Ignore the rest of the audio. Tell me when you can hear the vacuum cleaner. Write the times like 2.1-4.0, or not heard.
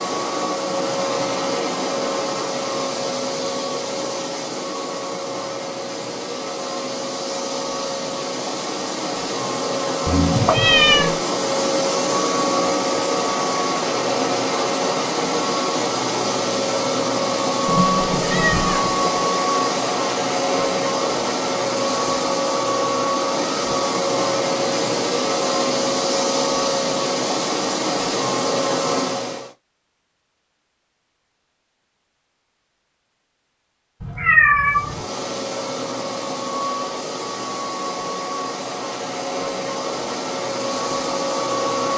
0.0-29.5, 34.6-41.9.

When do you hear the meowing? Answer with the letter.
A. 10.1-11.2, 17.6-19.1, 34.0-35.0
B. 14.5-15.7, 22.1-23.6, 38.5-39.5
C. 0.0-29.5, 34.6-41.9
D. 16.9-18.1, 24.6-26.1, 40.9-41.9
A.